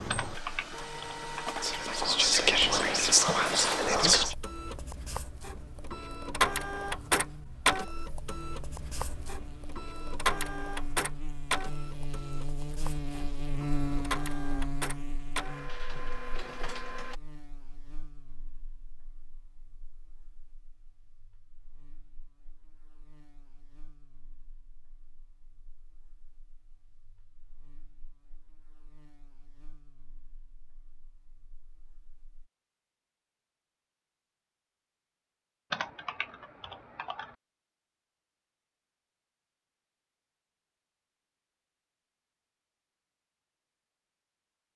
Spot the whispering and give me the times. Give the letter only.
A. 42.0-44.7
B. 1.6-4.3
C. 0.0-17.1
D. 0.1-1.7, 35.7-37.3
B.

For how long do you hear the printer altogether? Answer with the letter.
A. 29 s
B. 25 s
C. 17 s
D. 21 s
C.